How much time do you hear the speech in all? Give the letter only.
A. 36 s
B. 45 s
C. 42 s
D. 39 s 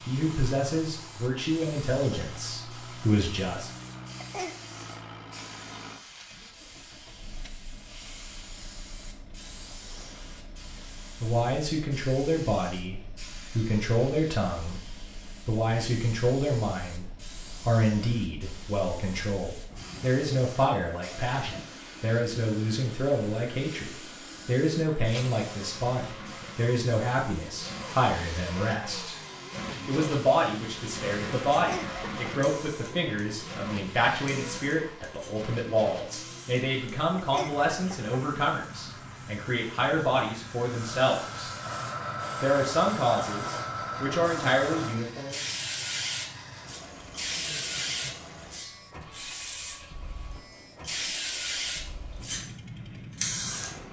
A.